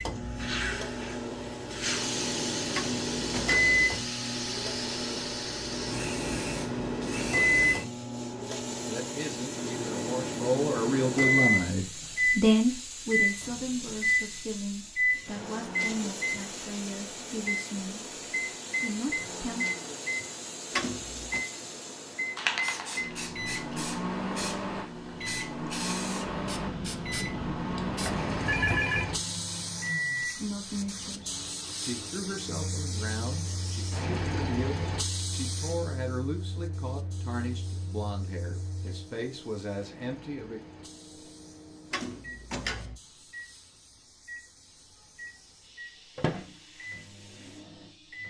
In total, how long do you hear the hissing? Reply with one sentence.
The hissing can be heard for 48 seconds in total.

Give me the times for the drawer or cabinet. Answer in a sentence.
You can hear the drawer or cabinet from 2.7 to 3.8 s, from 20.7 to 21.4 s and from 41.9 to 43.0 s.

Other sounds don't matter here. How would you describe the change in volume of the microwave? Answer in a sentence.
The volume of the microwave goes down.